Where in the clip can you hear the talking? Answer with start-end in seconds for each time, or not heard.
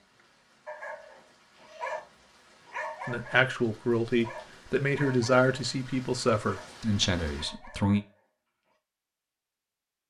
3.0-8.0.